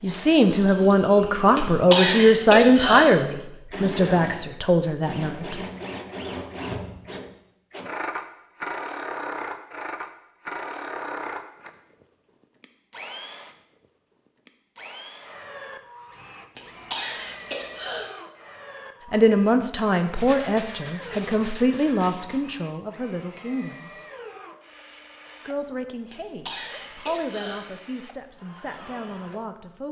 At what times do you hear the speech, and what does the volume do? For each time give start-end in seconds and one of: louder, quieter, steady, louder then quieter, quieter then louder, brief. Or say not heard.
0.0-5.6 quieter
19.1-23.9 quieter
25.4-29.8 louder then quieter.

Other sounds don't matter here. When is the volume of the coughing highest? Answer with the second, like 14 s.
2 s.